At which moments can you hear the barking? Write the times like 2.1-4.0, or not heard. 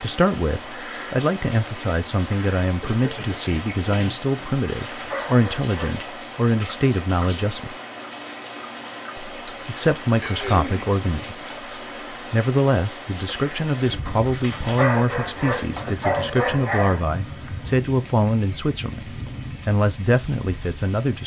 4.3-6.2, 14.1-17.0.